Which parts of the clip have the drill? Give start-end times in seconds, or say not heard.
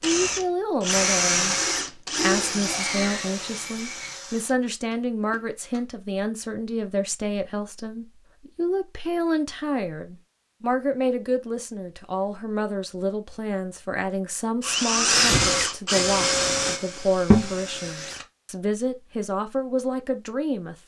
0.0-5.8, 14.6-18.2.